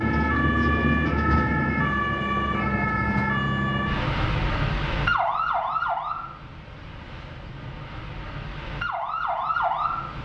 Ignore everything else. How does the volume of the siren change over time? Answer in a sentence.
The loudness of the siren goes down, then up.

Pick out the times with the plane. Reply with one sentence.
The plane can be heard from 0.0 to 1.9 s.